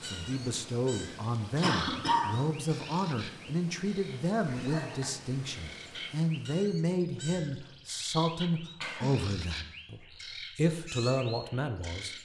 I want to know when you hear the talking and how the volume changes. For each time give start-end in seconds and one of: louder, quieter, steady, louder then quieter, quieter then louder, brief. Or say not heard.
0.0-12.2 steady.